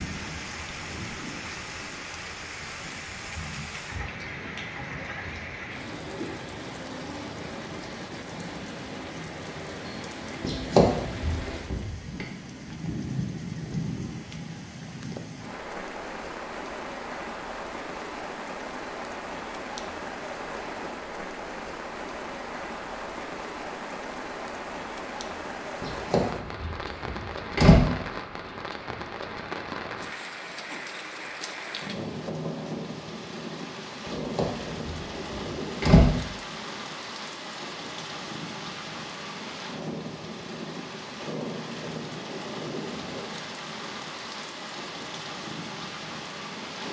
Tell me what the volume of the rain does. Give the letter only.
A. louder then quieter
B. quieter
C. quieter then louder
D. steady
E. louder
D.